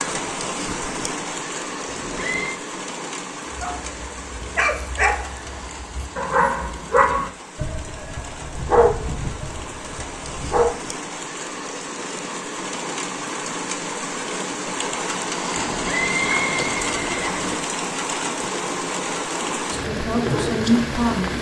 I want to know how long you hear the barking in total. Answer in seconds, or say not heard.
7 s.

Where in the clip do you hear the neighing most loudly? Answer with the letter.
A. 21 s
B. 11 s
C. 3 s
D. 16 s
D.